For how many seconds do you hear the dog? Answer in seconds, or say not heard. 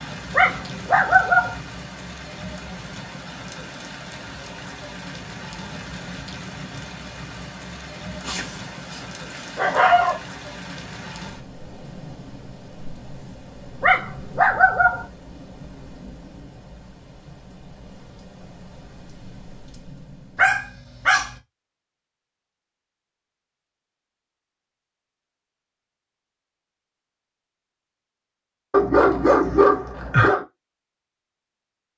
7 s.